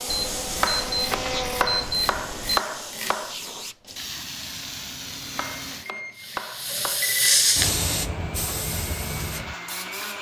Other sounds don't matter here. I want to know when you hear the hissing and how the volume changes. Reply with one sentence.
You can hear the hissing from 0.0 to 10.1 s, getting louder then quieter.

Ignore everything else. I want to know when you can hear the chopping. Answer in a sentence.
You can hear the chopping from 0.6 to 3.5 s and from 5.3 to 7.0 s.